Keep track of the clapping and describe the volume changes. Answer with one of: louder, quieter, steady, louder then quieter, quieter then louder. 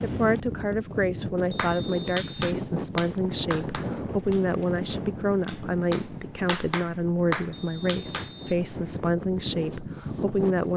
quieter then louder.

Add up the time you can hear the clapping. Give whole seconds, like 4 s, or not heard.
7 s.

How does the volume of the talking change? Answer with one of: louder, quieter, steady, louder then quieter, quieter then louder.
steady.